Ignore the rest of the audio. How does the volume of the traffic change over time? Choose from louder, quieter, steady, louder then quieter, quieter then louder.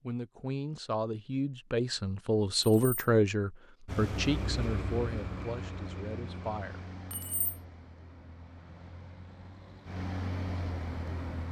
quieter then louder.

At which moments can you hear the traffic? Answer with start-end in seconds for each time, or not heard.
3.9-11.4.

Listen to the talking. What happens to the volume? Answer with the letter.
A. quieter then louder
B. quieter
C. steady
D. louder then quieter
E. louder
D.